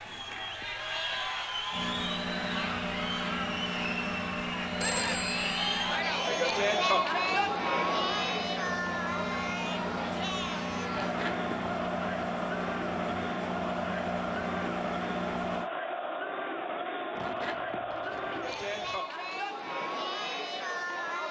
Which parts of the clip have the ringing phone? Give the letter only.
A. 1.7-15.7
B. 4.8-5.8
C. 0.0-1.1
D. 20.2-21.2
B.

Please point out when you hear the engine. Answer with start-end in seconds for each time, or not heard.
1.7-15.7.